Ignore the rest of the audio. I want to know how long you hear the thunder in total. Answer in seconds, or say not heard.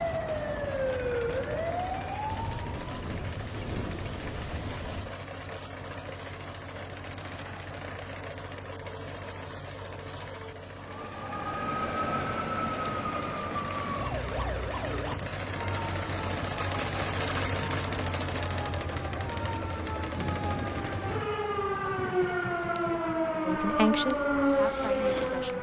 5 s.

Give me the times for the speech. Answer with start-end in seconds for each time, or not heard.
23.4-25.5.